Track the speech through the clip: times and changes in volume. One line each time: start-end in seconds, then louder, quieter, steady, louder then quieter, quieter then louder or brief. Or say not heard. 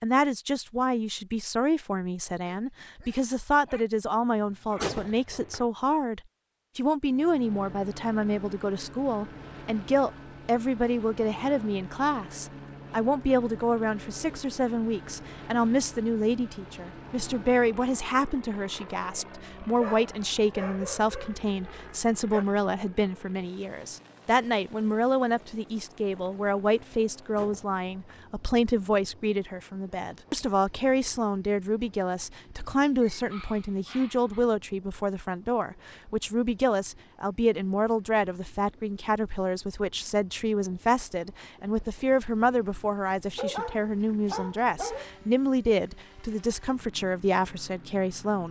0.0-48.4 steady.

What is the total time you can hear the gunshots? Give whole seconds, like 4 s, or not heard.
2 s.